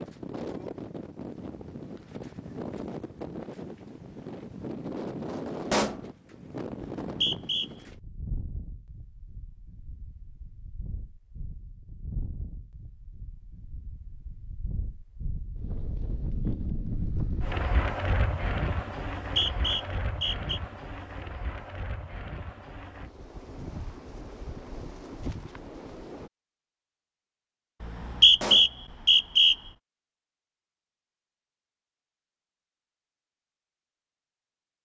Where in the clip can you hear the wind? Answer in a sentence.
You can hear the wind from 0.0 to 26.3 s.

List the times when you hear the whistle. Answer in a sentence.
You can hear the whistle from 7.0 to 7.7 s, from 19.2 to 20.6 s and from 27.8 to 29.6 s.